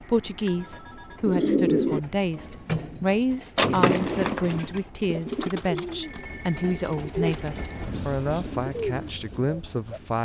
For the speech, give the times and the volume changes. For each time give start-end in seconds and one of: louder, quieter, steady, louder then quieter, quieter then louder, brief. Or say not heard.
0.1-10.1 steady.